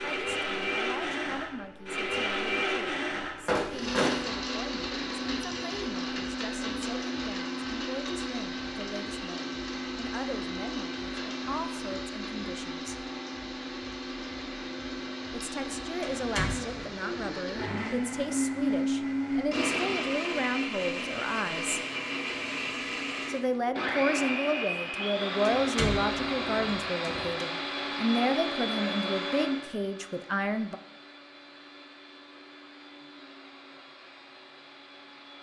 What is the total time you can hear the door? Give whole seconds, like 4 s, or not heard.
4 s.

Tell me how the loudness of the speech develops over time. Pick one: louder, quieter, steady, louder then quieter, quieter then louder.
louder.